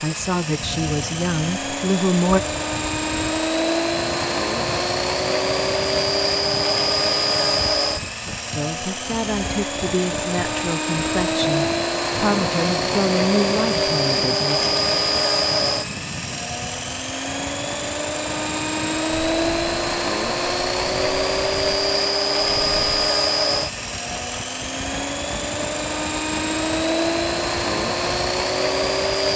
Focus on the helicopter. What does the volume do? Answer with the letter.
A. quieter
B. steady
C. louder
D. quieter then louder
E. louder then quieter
B.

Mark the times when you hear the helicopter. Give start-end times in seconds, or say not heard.
0.0-29.3.